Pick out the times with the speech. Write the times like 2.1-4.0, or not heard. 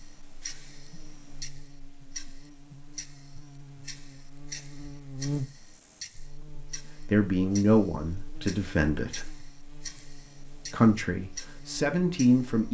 7.1-9.3, 10.7-12.6.